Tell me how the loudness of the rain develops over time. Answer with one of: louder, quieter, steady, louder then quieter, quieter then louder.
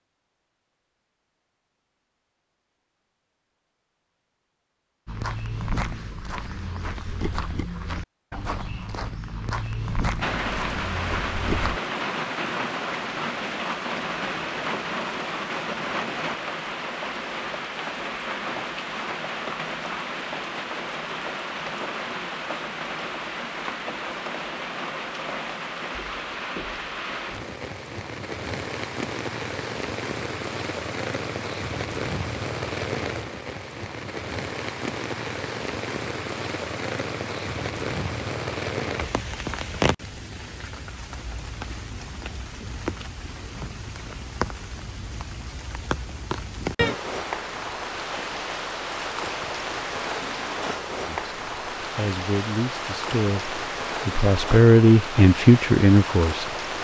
steady.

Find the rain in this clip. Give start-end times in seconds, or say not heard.
10.2-56.7.